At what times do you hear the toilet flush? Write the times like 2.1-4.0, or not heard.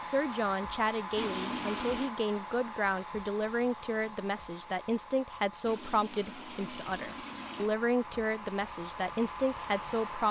1.1-2.1, 5.7-7.7.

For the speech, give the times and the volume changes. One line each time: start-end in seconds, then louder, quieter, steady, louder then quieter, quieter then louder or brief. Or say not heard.
0.0-10.2 steady.